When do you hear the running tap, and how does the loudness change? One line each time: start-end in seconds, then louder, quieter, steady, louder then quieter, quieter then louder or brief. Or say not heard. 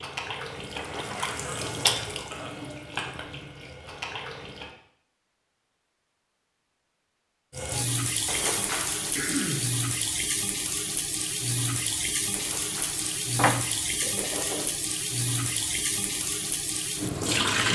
0.0-4.8 louder then quieter
7.5-17.7 steady.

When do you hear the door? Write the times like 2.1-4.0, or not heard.
0.8-1.6, 8.2-9.2, 12.3-13.6.